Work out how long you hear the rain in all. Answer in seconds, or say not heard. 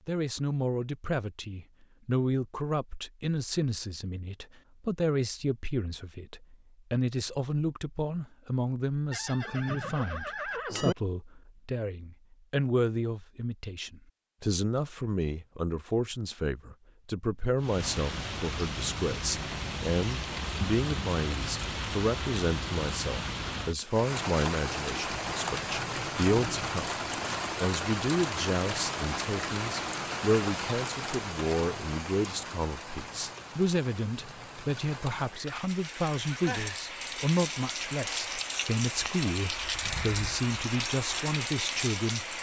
25 s.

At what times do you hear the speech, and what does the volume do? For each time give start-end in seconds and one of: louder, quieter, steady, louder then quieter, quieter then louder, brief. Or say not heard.
0.1-26.9 steady
27.6-42.3 steady.